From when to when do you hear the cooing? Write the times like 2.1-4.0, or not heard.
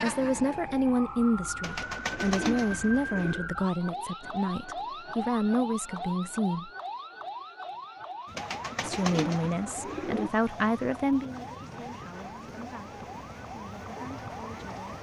1.6-3.5, 8.3-10.3.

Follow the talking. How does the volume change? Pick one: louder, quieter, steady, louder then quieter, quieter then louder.
quieter.